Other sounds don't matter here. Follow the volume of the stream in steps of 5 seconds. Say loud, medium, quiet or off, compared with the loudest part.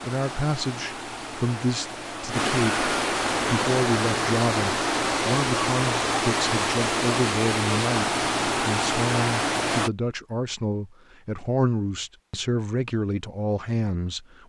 loud, loud, off.